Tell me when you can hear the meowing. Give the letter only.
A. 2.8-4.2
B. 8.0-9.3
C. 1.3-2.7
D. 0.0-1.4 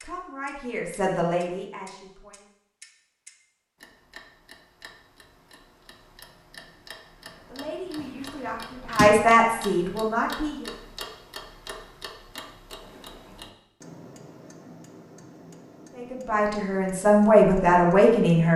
B.